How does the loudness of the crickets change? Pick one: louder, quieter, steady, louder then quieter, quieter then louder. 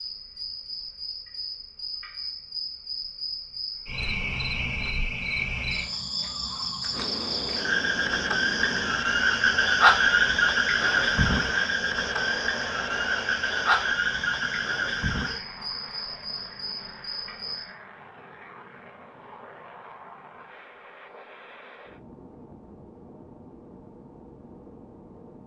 louder then quieter.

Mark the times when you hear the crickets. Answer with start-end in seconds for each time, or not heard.
0.0-17.7.